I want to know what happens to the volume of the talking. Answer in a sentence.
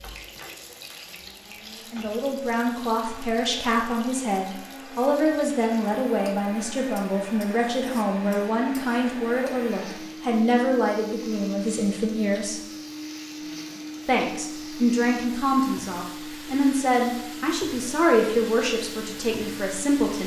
The loudness of the talking stays about the same.